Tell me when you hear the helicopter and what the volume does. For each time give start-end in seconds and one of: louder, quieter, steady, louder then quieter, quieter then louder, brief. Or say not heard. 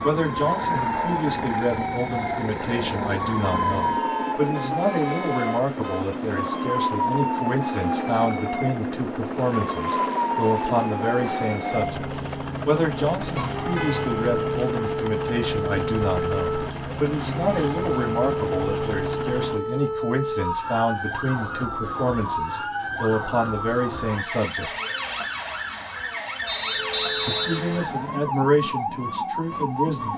0.0-19.6 steady.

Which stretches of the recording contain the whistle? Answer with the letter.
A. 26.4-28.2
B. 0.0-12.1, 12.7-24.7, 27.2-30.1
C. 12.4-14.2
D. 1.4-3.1
A.